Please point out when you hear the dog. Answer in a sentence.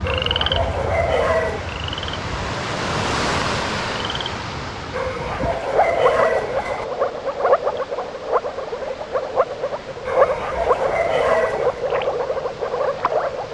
The dog can be heard from 0.0 to 1.8 s, from 4.9 to 6.8 s and from 10.1 to 11.8 s.